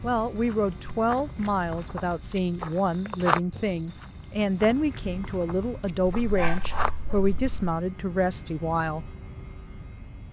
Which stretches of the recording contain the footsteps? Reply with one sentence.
The footsteps can be heard from 0.0 to 6.9 s.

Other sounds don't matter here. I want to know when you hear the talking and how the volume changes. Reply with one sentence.
The talking can be heard from 0.0 to 9.1 s, at a steady volume.